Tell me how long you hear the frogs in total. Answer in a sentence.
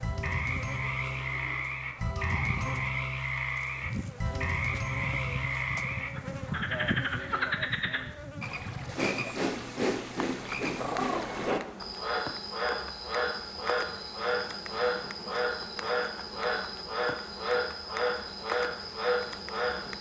You can hear the frogs for 20 seconds altogether.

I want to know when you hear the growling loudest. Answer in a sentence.
The loudest moment of the growling is at 11 seconds.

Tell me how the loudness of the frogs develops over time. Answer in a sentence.
The loudness of the frogs stays about the same.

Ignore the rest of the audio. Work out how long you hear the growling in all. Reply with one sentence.
The growling can be heard for 2 seconds in total.